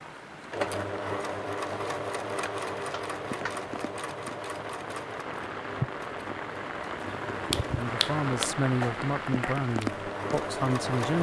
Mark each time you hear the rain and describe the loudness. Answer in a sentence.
You can hear the rain from 0.0 to 11.1 s, getting louder.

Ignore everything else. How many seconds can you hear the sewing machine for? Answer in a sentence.
You can hear the sewing machine for 11 seconds altogether.